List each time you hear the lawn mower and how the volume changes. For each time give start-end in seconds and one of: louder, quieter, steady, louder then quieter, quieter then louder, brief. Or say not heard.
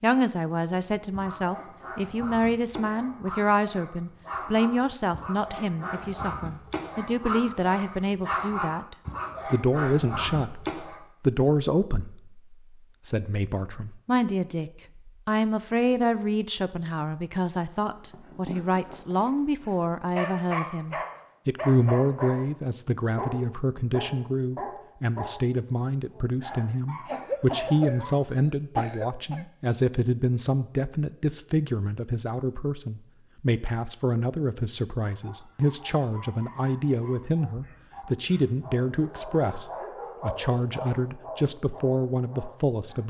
not heard.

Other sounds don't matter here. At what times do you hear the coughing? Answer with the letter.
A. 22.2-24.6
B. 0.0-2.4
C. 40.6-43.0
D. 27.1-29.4
D.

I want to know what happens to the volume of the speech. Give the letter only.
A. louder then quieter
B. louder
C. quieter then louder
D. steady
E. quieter
D.